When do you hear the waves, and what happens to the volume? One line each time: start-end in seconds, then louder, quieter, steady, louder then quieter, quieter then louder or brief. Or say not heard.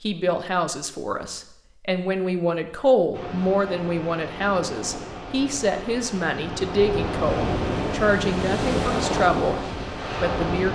3.1-10.6 louder.